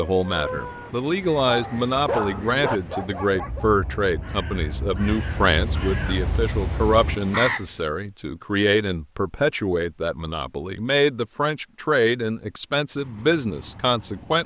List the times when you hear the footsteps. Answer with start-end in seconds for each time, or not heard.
not heard.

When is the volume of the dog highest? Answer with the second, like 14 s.
2 s.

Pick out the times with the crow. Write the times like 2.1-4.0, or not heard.
1.2-7.8.